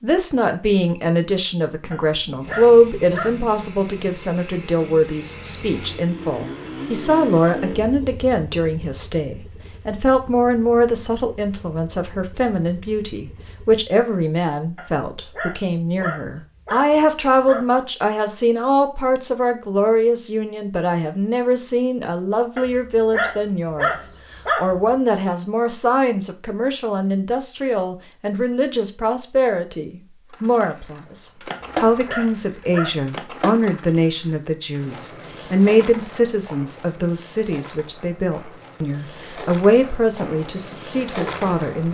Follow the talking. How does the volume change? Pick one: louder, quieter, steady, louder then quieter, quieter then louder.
steady.